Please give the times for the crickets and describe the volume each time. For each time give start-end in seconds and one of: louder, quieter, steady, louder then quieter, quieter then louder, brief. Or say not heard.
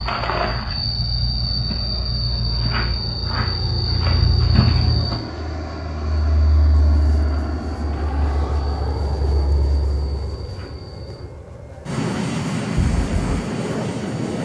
0.0-11.2 quieter.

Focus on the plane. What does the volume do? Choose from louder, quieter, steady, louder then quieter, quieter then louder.
louder.